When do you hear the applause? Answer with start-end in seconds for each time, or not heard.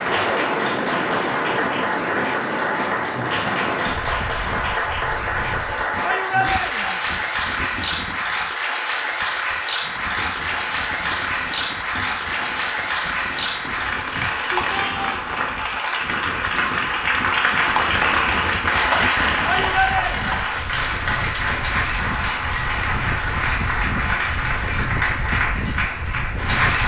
0.0-26.8.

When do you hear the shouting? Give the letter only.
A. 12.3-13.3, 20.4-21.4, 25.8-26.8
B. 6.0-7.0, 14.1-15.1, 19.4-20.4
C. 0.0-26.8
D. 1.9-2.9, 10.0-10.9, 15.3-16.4
B.